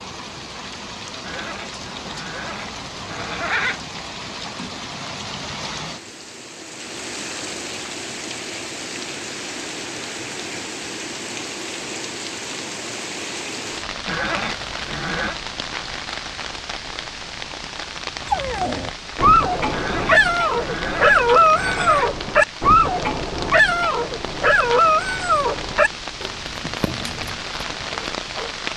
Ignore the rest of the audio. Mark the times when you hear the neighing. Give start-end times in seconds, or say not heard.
1.2-3.8, 14.1-15.3, 19.7-22.1.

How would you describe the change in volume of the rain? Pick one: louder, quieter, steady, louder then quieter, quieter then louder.
steady.